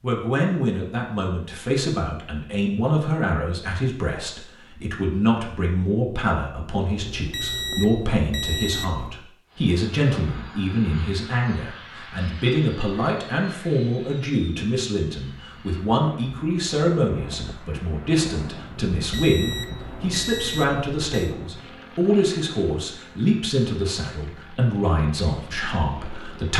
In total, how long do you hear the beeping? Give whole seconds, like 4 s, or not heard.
5 s.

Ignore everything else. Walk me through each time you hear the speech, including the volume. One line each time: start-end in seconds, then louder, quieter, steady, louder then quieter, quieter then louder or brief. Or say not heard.
0.0-26.5 steady.